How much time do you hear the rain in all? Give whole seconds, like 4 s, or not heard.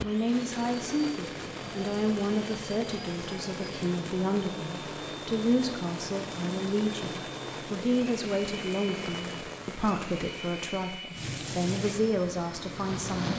13 s.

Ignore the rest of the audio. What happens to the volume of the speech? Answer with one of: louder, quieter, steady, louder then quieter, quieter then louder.
steady.